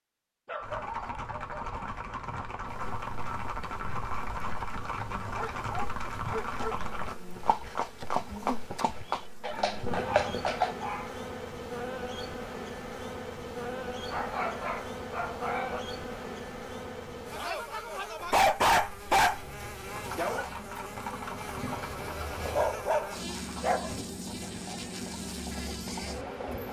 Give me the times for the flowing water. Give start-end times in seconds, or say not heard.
not heard.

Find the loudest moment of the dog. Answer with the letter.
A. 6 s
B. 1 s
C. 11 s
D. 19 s
D.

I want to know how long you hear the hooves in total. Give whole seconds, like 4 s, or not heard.
17 s.